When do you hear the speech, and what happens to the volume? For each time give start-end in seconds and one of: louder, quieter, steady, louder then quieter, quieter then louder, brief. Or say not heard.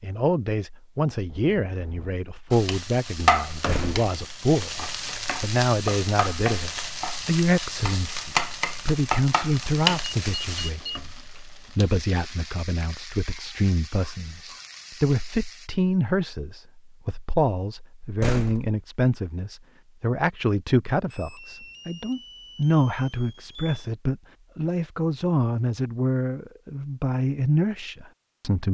0.0-28.6 steady.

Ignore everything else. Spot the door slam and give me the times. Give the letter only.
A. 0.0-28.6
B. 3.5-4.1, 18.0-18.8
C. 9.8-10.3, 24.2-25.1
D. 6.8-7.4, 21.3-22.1
B.